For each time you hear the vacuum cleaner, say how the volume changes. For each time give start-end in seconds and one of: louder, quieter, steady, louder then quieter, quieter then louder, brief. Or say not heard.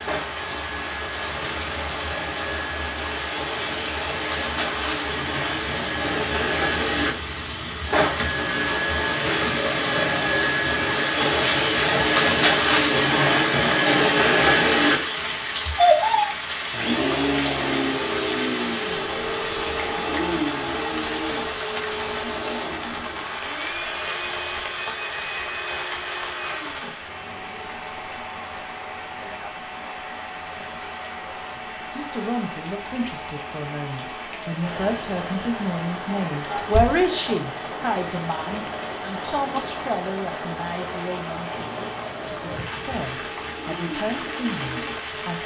0.0-45.4 louder then quieter.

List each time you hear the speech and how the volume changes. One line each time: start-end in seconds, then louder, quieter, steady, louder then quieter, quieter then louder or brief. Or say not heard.
31.6-45.4 louder then quieter.